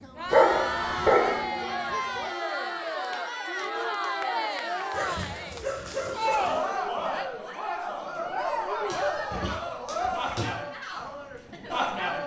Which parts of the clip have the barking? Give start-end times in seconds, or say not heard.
0.3-1.4, 4.9-6.7, 8.9-10.6.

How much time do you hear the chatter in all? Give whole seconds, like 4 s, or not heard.
12 s.